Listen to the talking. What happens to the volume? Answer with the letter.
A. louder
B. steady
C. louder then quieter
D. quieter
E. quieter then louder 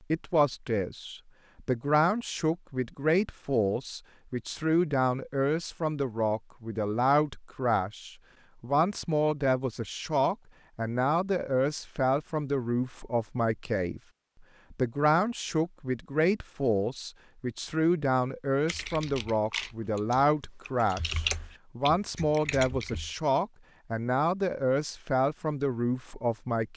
B.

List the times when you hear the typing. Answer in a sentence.
You can hear the typing from 18.6 to 23.1 s.